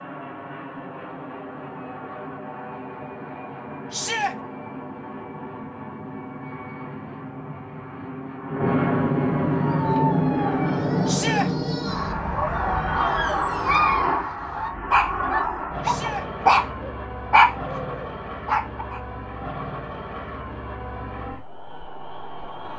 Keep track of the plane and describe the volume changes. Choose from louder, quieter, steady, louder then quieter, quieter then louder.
louder then quieter.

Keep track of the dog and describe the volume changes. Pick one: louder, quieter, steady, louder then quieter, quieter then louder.
louder.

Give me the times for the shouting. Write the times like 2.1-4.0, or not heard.
3.9-4.3, 11.1-11.5, 15.8-16.2.